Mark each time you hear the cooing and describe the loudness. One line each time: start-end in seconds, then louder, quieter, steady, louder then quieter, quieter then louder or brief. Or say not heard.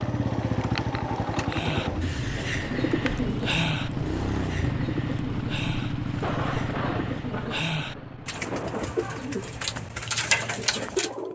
1.5-11.3 quieter then louder.